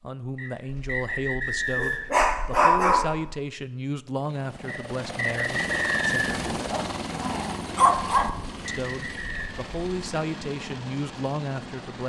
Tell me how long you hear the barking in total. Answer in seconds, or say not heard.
5 s.